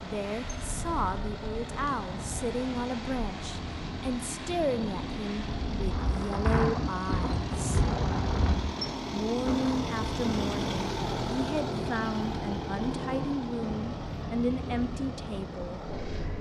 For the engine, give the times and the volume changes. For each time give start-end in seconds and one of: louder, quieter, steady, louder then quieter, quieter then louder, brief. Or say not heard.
0.0-16.3 louder then quieter.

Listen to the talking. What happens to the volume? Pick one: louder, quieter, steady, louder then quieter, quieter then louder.
steady.